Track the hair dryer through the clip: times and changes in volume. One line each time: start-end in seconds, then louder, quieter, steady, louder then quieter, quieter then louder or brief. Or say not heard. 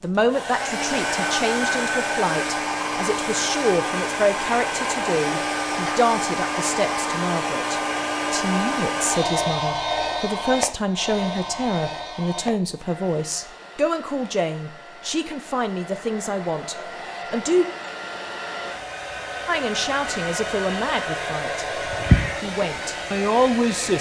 0.0-23.9 quieter then louder.